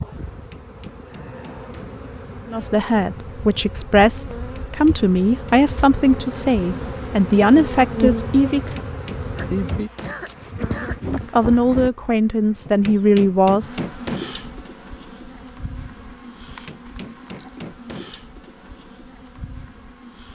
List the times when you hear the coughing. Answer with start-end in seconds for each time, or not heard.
9.3-11.0.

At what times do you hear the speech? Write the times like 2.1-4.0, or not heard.
2.5-8.8, 11.1-13.8.